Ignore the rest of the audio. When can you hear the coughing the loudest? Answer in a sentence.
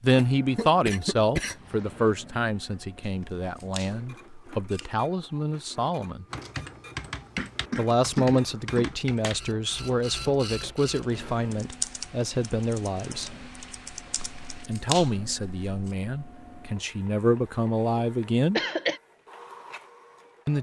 The volume of the coughing peaks at 19 seconds.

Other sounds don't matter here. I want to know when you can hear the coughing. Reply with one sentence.
You can hear the coughing from 0.1 to 2.1 s, from 7.3 to 9.3 s and from 18.2 to 19.0 s.